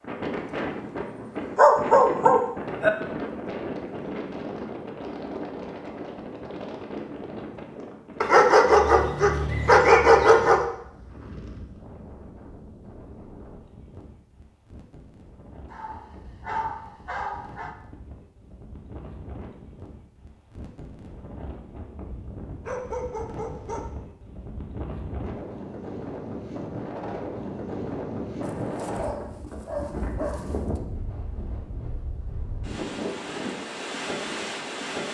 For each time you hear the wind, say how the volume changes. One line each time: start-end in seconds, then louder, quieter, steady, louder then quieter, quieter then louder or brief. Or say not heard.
0.0-35.0 quieter then louder.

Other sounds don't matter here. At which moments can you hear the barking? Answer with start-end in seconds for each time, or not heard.
1.6-2.9, 8.2-10.6, 15.7-17.8, 22.6-23.9, 28.4-30.8.